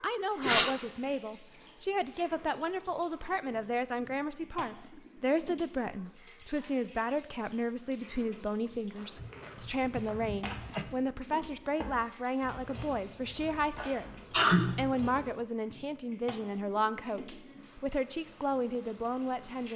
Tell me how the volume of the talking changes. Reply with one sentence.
The loudness of the talking stays about the same.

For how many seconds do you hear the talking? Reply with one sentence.
You can hear the talking for 20 seconds altogether.